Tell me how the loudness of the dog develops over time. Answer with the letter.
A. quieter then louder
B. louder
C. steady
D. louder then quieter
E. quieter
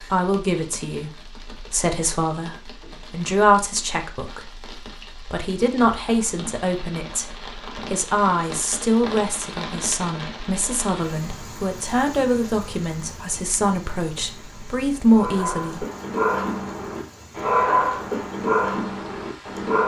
D.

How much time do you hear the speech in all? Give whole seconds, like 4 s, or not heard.
16 s.